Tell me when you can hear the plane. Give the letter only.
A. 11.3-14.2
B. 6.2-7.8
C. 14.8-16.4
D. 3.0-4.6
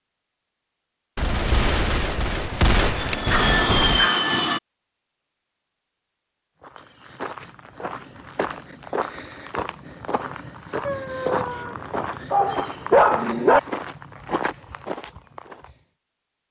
D.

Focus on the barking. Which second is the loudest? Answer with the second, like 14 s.
13 s.